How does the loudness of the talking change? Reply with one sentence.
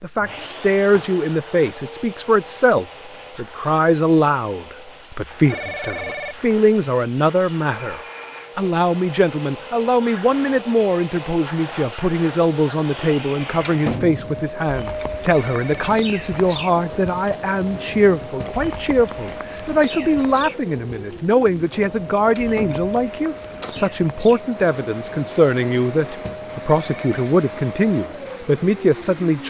The loudness of the talking stays about the same.